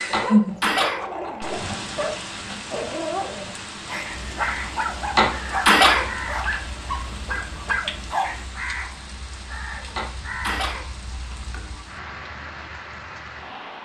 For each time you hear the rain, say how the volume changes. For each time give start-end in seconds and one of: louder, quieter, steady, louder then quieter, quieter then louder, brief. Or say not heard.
0.0-13.7 quieter.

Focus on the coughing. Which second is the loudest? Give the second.
6 s.